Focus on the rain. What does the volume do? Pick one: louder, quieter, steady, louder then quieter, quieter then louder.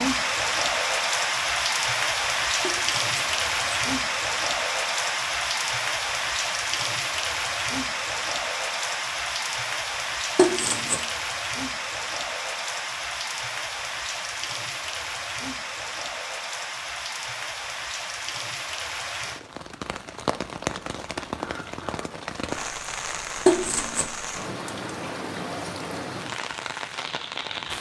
quieter.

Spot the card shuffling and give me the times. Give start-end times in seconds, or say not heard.
2.6-3.8, 10.3-11.0, 23.4-24.1.